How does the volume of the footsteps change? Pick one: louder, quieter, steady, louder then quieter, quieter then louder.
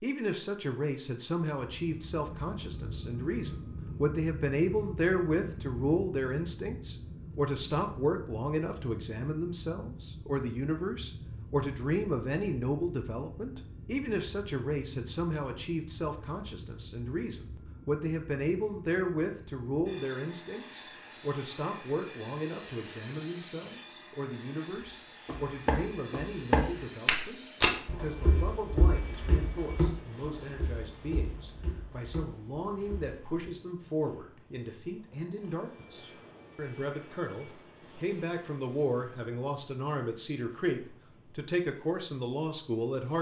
quieter.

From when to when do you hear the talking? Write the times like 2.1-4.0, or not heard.
0.0-43.1.